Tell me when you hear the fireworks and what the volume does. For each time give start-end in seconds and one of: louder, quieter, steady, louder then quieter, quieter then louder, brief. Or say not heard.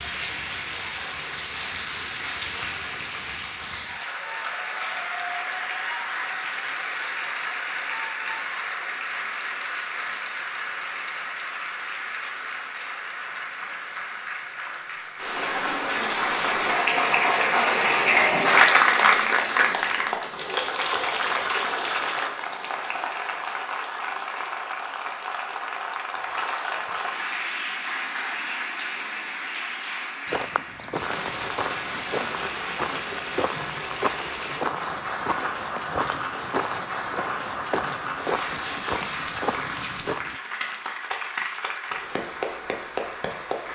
not heard.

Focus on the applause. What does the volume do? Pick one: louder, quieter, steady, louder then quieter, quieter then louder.
louder then quieter.